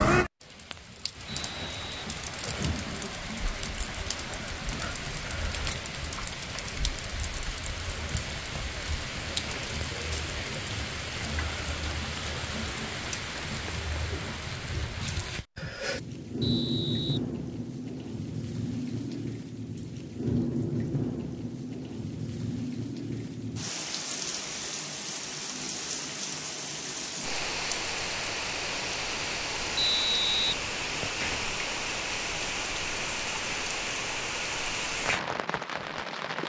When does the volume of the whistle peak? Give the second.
30 s.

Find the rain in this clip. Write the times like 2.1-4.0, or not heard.
0.0-36.4.